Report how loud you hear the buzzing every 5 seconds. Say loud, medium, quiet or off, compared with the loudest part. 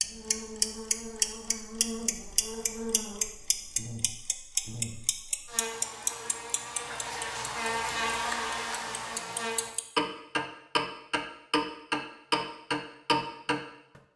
medium, loud, off.